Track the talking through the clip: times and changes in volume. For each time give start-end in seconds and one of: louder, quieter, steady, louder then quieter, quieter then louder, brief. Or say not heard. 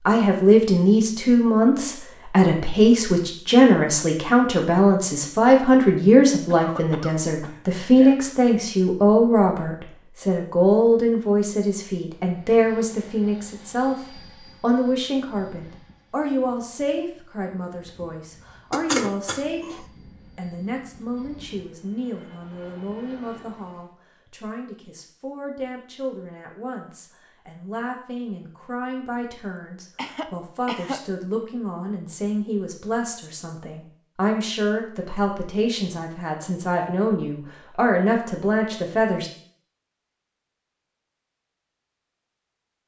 0.0-39.3 quieter then louder.